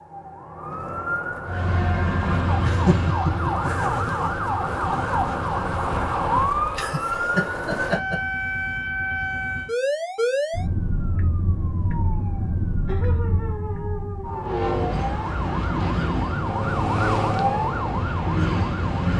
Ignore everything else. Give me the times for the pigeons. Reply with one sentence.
The pigeons can't be heard in this clip.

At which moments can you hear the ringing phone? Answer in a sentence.
You can't hear the ringing phone here.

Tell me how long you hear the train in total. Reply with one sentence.
The train can be heard for 10 seconds in total.